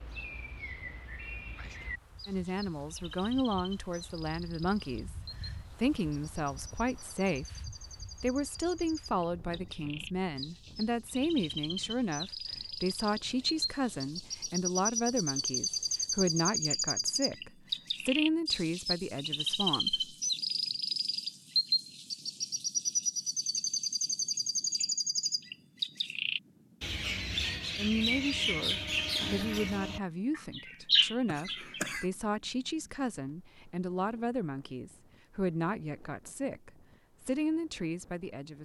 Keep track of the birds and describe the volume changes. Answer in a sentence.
The loudness of the birds goes up.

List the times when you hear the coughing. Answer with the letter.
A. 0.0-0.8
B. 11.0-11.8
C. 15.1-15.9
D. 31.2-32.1
D.